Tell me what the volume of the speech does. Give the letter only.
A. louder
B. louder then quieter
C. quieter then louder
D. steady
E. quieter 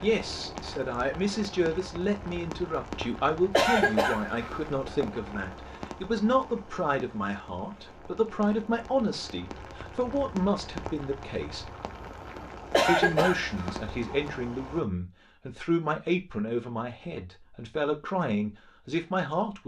D.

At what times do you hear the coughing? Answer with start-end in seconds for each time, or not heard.
3.5-4.7, 12.7-13.8.